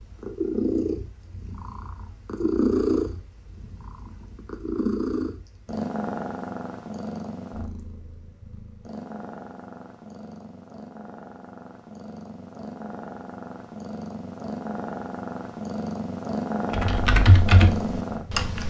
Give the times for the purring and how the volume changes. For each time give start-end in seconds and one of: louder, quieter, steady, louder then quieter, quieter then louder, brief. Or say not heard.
0.0-18.6 quieter then louder.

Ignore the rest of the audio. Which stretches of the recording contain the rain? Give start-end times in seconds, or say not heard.
not heard.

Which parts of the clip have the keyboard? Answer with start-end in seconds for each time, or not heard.
16.7-18.6.